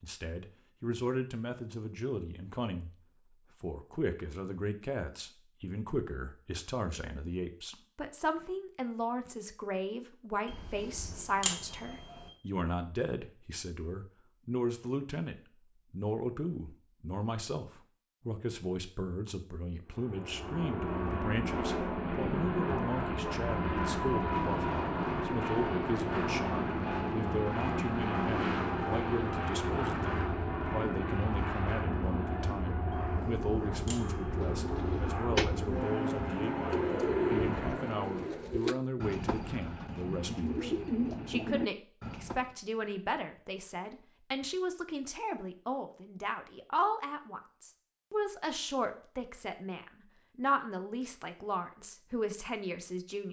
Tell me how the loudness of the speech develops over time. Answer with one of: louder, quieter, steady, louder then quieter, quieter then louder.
steady.